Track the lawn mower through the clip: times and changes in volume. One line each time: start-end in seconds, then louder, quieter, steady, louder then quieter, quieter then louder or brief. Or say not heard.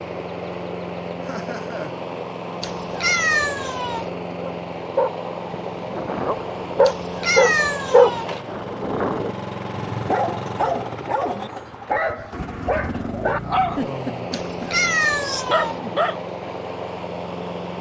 0.0-17.7 steady.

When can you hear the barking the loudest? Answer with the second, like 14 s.
8 s.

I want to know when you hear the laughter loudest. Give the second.
14 s.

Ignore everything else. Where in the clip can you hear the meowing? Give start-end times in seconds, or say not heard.
2.6-4.1, 6.8-8.2, 14.3-15.8.